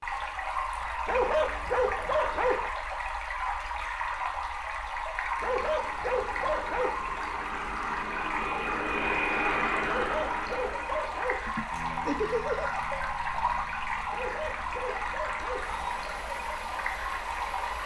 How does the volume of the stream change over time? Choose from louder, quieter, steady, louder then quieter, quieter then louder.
steady.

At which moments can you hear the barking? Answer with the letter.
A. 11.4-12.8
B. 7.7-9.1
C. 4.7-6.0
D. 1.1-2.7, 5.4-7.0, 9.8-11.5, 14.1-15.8
D.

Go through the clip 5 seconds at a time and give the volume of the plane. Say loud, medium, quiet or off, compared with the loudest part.
off, loud, medium, quiet.